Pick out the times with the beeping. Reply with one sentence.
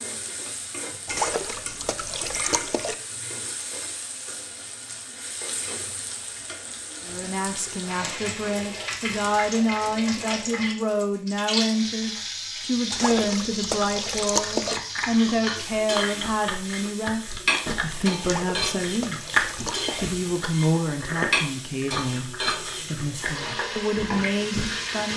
You can't hear the beeping here.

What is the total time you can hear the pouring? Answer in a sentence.
You can hear the pouring for 6 seconds altogether.